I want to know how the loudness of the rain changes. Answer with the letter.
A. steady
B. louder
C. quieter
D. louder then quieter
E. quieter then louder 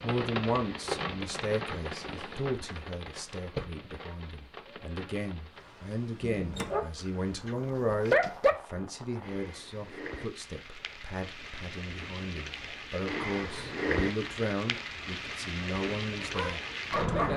E.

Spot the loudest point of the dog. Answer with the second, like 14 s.
8 s.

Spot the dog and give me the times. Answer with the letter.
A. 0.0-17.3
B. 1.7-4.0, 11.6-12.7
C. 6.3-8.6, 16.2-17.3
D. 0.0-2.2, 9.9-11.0
C.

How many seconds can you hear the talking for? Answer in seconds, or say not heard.
17 s.